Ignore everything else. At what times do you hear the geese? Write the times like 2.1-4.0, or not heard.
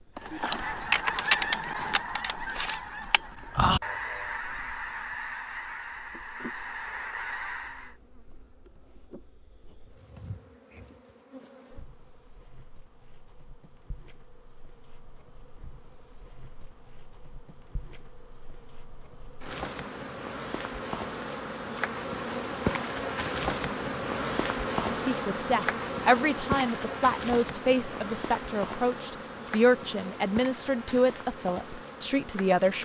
0.1-7.9.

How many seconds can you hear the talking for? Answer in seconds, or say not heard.
8 s.